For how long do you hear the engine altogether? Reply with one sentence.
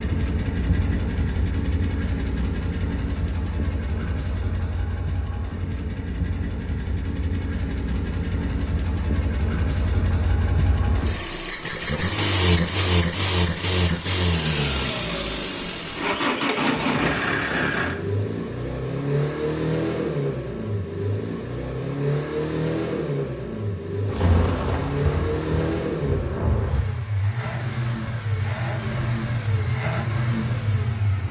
The engine can be heard for 31 seconds in total.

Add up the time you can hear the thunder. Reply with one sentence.
The thunder can be heard for 3 seconds in total.